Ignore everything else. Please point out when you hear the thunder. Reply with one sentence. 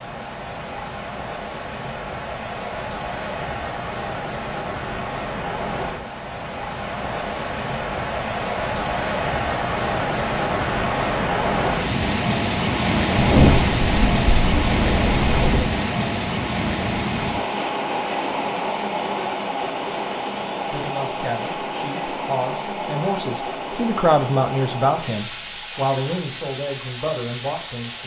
The thunder can be heard from 13.2 to 15.7 s.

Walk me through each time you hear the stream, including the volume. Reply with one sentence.
You can hear the stream from 0.0 to 28.0 s, getting louder then quieter.